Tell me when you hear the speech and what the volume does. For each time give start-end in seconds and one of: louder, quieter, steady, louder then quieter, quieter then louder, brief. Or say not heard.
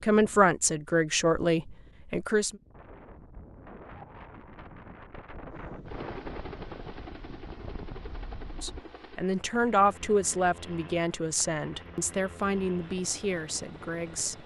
0.0-2.5 brief
8.6-14.4 quieter.